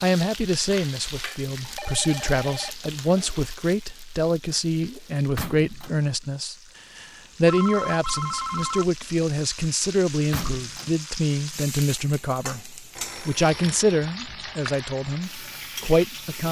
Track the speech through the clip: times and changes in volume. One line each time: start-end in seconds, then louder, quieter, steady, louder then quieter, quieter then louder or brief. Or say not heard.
0.0-16.4 steady.